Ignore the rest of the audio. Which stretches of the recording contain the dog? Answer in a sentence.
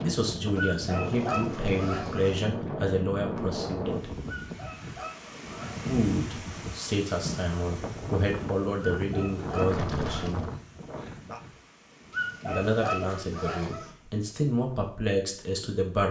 The dog can be heard from 0.6 to 2.4 s, from 4.2 to 5.9 s, from 8.8 to 10.3 s and from 12.1 to 13.9 s.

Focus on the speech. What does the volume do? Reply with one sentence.
The loudness of the speech stays about the same.